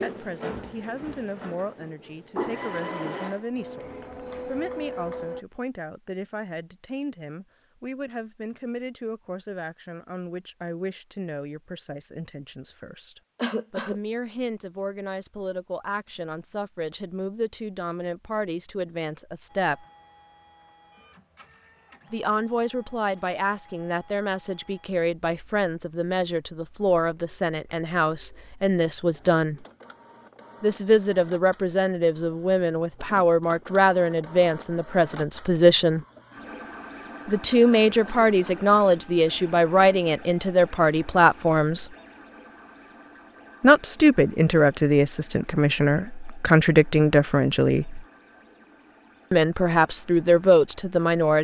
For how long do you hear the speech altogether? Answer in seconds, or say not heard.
44 s.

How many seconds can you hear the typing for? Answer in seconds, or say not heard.
not heard.